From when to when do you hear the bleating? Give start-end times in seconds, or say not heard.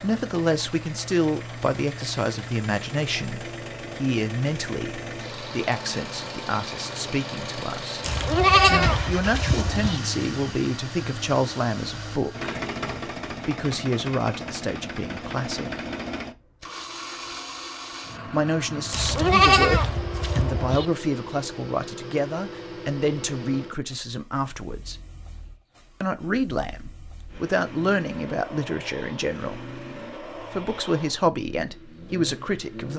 8.0-10.0, 18.9-20.9.